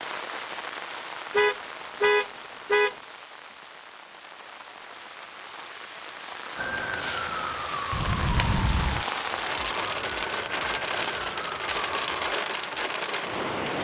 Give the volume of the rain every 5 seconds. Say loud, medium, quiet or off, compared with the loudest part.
medium, loud, loud.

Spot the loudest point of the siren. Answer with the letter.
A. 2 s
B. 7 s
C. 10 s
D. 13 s
B.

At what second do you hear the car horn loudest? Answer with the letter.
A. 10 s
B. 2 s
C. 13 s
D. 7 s
B.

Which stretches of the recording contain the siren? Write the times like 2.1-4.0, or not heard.
6.5-12.3.